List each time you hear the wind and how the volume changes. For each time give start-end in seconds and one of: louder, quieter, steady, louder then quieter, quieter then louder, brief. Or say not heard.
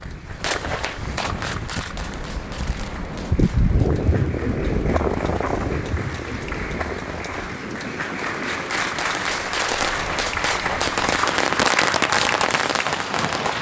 0.0-13.5 louder then quieter.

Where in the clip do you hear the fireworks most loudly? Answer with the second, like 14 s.
12 s.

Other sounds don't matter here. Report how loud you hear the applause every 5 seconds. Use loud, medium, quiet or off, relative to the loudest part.
quiet, loud, loud.